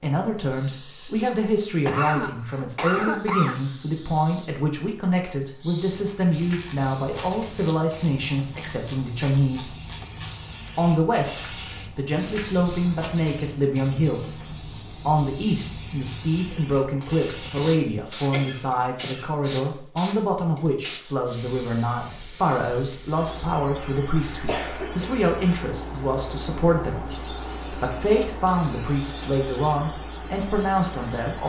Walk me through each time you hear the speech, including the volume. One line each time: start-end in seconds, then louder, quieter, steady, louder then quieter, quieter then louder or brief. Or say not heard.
0.0-9.8 steady
10.8-31.4 steady.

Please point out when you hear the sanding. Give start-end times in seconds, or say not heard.
not heard.